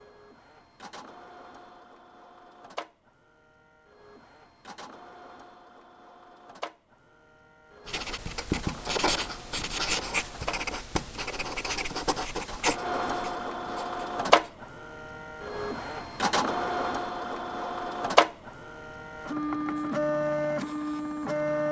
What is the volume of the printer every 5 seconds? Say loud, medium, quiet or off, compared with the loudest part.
quiet, quiet, loud, loud, loud.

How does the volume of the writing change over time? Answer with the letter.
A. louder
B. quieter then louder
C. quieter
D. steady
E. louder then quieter
C.